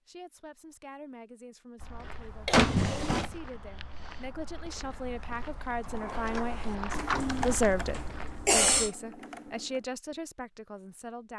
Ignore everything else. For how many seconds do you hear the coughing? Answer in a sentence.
You can hear the coughing for 2 seconds altogether.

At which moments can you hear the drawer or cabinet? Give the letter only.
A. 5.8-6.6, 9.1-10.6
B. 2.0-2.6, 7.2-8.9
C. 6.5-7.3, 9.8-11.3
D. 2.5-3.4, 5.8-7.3
D.